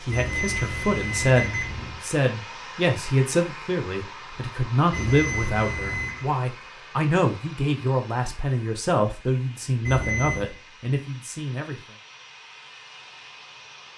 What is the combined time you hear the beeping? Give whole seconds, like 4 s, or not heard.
4 s.